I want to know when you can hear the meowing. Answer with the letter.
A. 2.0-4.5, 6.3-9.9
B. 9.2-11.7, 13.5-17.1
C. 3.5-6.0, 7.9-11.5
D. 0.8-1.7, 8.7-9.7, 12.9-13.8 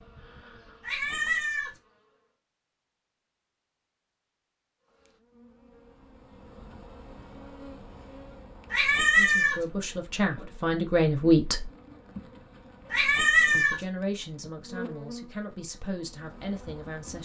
D.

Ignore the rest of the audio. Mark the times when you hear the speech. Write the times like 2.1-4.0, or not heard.
9.2-11.7, 13.5-17.1.